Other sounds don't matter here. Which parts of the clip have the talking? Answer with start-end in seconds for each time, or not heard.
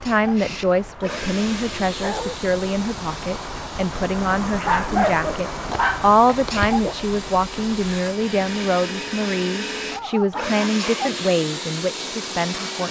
0.0-12.8.